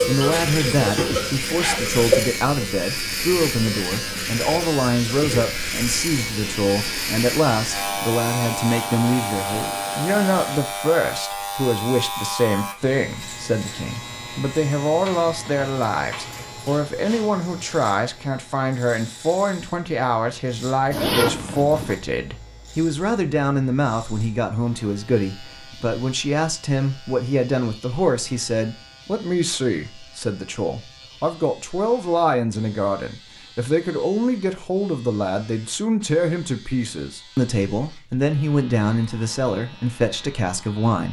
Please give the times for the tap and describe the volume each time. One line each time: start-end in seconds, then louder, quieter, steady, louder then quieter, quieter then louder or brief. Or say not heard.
0.0-10.6 quieter.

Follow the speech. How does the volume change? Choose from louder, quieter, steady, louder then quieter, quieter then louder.
steady.